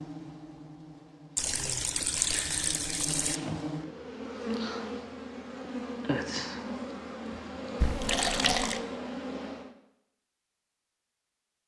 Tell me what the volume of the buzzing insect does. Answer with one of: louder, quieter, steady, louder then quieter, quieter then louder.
louder.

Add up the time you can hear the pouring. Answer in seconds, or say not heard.
3 s.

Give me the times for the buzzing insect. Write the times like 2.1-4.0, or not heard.
0.0-9.7.